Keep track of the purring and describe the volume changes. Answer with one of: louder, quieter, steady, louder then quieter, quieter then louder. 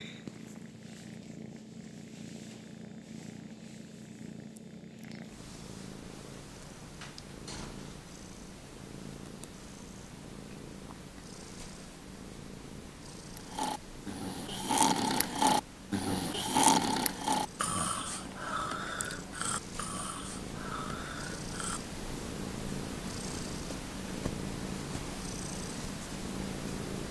louder.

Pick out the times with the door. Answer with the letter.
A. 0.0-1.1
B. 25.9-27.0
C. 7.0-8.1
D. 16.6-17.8
C.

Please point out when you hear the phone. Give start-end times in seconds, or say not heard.
not heard.